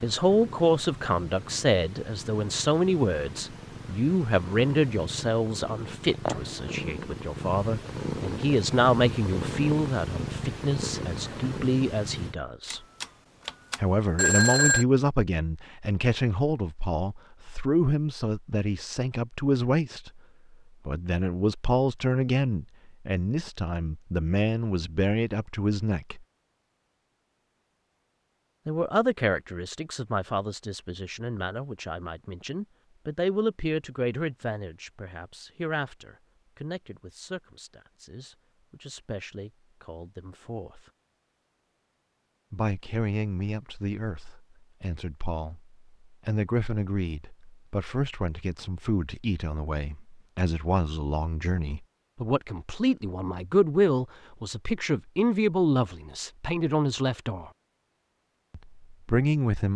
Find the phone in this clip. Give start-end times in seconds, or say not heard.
12.7-14.8.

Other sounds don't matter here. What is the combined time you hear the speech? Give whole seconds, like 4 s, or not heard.
53 s.